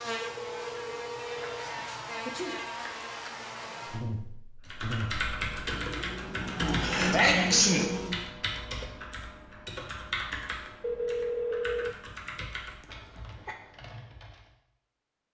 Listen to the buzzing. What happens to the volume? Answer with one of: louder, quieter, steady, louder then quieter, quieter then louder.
louder.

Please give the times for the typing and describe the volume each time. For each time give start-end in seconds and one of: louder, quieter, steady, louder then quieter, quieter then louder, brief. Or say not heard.
4.7-14.6 quieter.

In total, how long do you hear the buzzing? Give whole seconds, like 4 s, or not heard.
8 s.